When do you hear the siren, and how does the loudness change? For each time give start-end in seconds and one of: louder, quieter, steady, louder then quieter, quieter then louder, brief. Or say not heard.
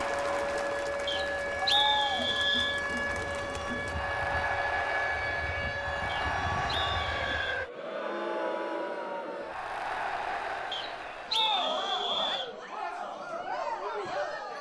0.0-7.7 steady.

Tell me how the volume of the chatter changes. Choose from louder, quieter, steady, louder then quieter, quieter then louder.
steady.